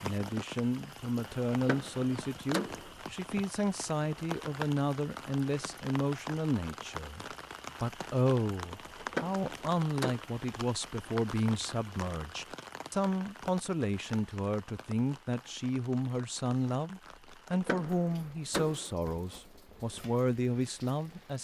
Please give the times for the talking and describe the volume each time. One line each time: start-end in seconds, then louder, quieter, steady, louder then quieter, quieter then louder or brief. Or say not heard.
0.0-21.4 steady.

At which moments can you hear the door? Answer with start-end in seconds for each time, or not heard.
1.5-3.0, 8.9-10.2, 17.5-18.9.